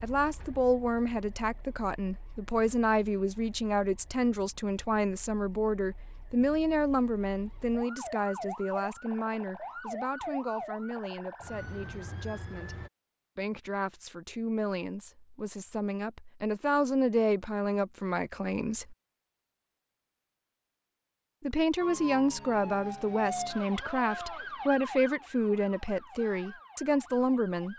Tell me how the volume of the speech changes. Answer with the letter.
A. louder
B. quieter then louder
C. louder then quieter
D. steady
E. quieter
B.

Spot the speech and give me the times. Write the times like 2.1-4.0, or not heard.
0.0-18.9, 21.4-27.7.